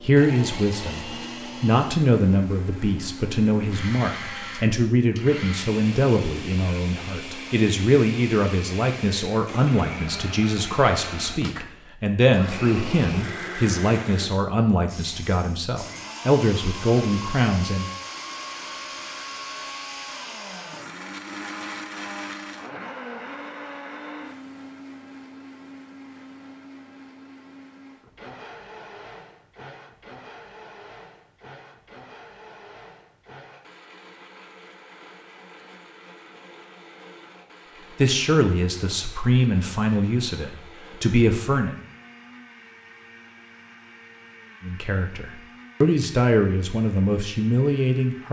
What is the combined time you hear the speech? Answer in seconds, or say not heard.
25 s.